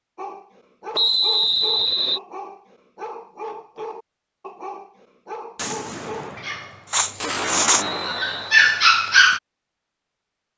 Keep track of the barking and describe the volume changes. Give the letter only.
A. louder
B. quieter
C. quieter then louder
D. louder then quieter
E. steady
A.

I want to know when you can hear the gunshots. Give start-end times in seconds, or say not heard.
5.5-8.9.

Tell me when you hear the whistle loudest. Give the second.
1 s.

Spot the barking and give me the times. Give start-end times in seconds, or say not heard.
0.1-9.4.